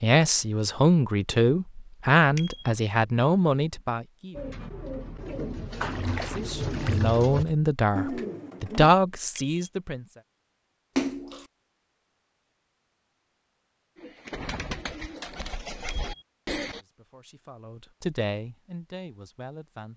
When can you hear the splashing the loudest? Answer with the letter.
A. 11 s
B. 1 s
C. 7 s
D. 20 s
A.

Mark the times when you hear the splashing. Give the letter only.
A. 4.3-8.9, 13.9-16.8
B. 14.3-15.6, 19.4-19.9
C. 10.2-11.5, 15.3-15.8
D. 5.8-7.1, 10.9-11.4
D.